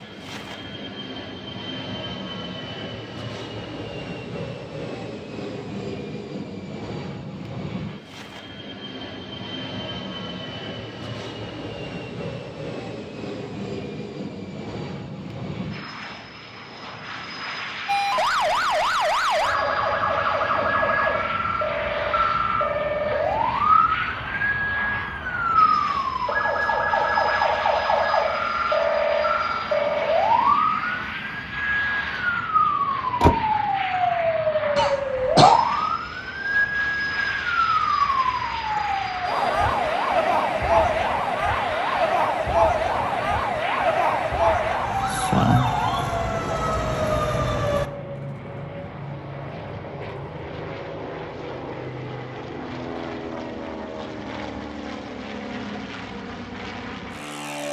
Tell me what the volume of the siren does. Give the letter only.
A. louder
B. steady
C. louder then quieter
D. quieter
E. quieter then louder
B.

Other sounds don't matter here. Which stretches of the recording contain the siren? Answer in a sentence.
The siren can be heard from 17.9 to 47.9 s.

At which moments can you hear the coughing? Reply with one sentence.
The coughing can be heard from 34.8 to 35.6 s.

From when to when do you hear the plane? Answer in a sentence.
You can hear the plane from 0.0 to 57.6 s.